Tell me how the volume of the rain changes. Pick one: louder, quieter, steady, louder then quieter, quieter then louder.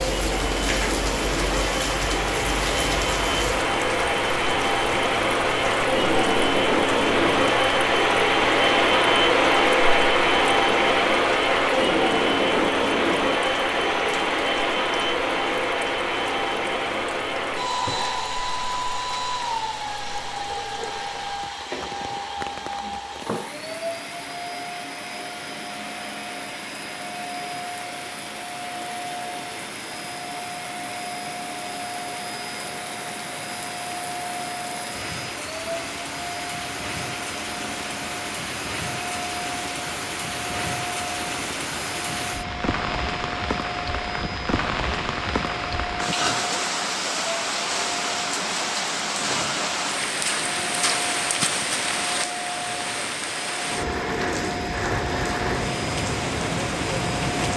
quieter then louder.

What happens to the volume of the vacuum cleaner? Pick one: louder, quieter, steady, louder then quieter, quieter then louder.
quieter.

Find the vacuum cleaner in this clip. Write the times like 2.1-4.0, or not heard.
0.0-57.5.